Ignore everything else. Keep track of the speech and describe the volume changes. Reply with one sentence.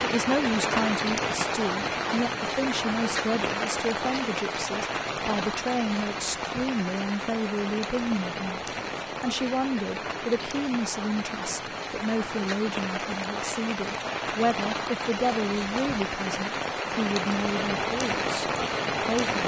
The loudness of the speech stays about the same.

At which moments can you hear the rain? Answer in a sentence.
You can hear the rain from 0.0 to 19.4 s.